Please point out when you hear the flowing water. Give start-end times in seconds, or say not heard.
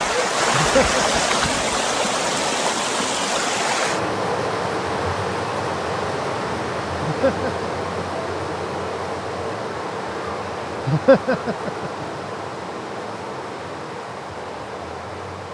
0.0-15.4.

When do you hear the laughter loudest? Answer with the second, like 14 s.
11 s.